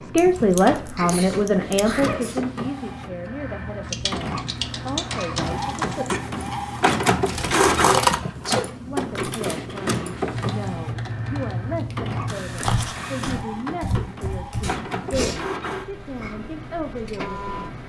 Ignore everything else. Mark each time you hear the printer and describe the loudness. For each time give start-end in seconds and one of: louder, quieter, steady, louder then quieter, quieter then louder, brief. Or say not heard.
0.0-17.8 louder then quieter.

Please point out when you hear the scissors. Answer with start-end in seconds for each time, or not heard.
0.1-2.0, 7.2-8.2, 12.2-13.4.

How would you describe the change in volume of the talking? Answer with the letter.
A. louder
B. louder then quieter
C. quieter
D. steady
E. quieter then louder
C.